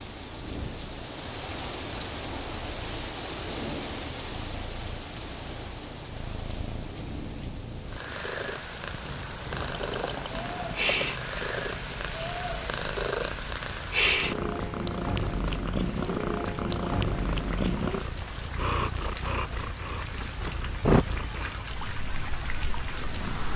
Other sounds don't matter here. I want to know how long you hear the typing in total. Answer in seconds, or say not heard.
2 s.